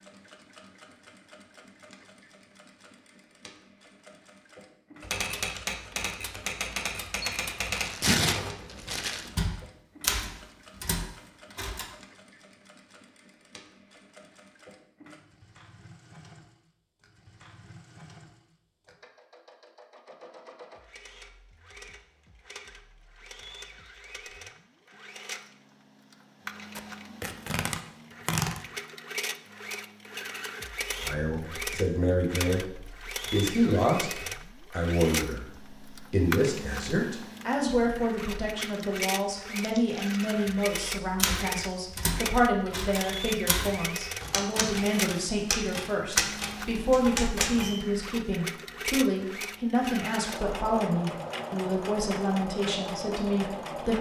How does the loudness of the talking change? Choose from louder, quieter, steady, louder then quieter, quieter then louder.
steady.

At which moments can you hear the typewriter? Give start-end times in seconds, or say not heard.
5.0-11.9, 41.1-47.8.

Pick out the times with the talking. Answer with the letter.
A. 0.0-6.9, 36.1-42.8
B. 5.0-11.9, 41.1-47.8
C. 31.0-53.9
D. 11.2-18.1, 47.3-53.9
C.